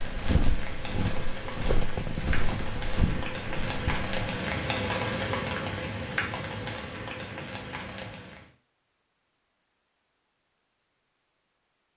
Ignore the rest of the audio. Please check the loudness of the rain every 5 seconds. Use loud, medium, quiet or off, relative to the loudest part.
loud, loud, off.